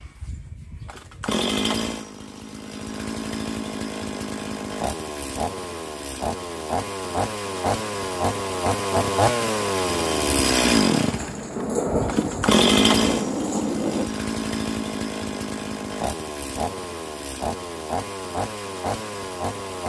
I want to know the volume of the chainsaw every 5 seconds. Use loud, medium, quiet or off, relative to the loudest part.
medium, loud, loud, medium.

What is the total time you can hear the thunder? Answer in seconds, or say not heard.
3 s.